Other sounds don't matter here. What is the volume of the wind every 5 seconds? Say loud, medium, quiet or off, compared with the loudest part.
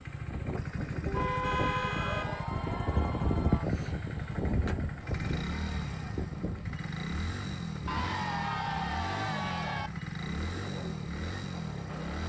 loud, medium, medium.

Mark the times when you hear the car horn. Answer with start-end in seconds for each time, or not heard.
1.1-2.5.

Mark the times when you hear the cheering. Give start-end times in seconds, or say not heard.
1.9-3.6, 7.8-9.9.